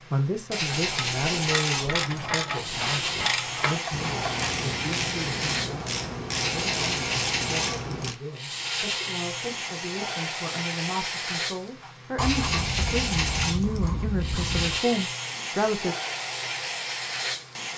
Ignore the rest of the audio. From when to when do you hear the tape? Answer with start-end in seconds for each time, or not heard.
not heard.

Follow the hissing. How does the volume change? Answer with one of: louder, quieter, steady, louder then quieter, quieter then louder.
steady.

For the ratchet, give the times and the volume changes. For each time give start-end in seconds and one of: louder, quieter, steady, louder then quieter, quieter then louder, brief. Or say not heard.
0.7-8.2 steady.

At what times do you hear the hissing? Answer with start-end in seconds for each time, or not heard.
0.0-17.7.